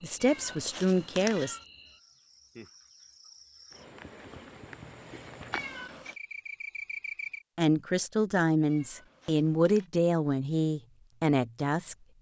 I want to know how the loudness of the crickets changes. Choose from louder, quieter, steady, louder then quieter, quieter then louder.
louder.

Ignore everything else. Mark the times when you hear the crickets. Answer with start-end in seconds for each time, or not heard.
0.0-7.5.